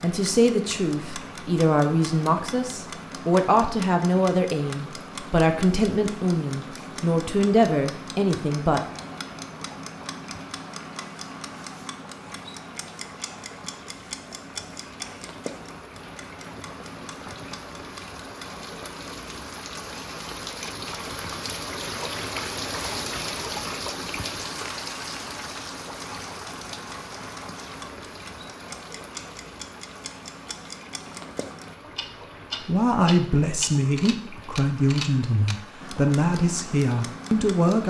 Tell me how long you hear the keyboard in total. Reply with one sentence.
You can't hear the keyboard here.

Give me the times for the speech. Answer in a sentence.
You can hear the speech from 0.0 to 8.8 s and from 32.6 to 37.8 s.